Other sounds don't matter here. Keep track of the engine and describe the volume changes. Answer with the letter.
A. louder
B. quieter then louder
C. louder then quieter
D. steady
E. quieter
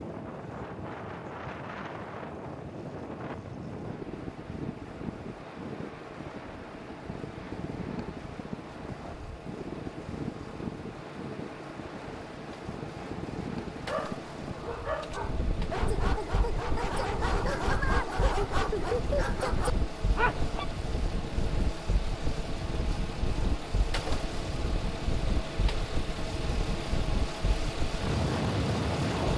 A.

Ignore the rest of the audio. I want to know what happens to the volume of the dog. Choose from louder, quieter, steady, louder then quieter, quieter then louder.
louder.